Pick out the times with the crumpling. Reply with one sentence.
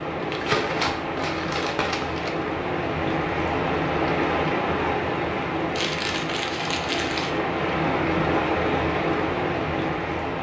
The crumpling can be heard from 0.3 to 2.3 s and from 5.8 to 7.3 s.